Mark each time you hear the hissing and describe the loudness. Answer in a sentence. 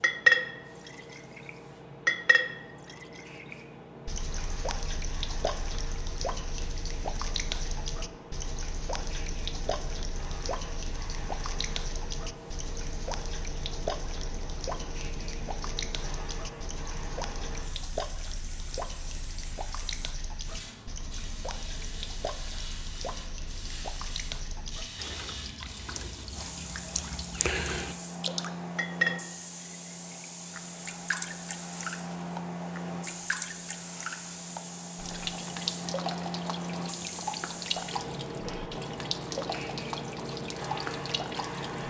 You can hear the hissing from 0.0 to 41.8 s, getting louder.